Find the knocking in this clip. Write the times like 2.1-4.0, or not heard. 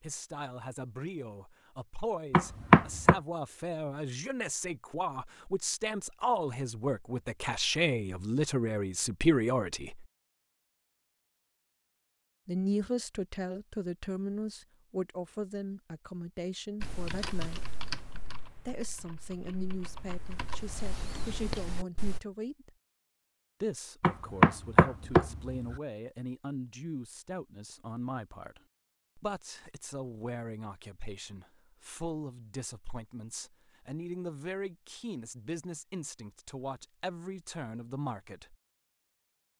2.3-3.1, 24.0-25.8.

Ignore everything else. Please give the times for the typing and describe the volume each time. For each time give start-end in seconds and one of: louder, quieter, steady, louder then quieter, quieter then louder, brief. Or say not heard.
16.8-22.2 quieter then louder.